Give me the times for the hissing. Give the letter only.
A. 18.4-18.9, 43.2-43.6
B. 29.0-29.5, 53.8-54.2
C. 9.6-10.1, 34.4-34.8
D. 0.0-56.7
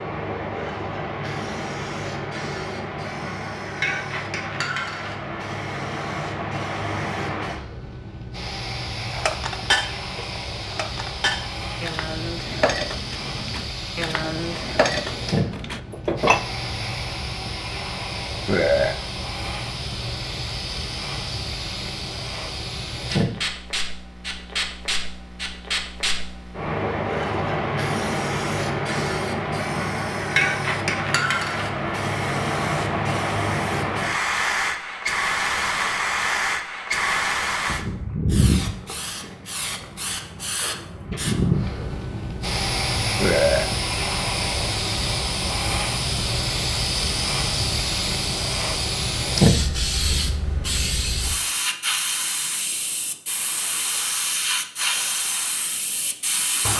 D.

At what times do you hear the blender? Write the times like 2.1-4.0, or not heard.
not heard.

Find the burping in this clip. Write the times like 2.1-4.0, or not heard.
18.4-18.9, 43.2-43.6.